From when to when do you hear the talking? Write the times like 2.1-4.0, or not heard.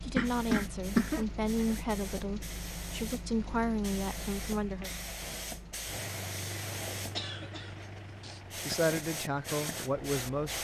0.0-4.9, 8.7-10.5.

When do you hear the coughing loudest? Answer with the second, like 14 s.
1 s.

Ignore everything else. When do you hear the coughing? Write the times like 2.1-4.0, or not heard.
0.1-1.2, 7.2-8.4.